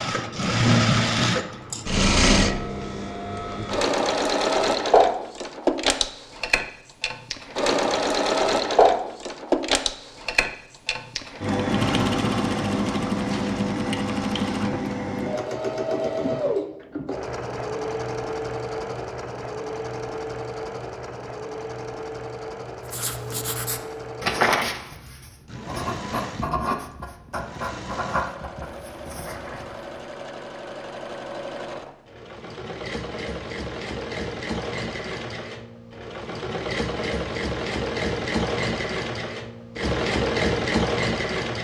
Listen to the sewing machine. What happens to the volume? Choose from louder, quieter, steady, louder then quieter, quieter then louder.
quieter then louder.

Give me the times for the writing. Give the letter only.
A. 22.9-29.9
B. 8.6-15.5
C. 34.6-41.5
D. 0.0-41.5
A.